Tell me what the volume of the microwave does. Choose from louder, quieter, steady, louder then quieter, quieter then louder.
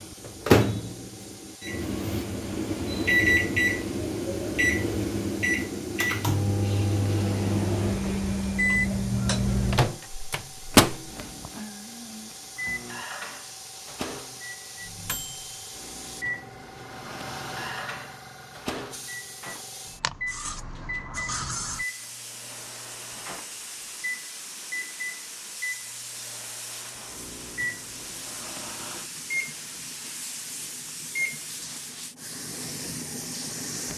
quieter.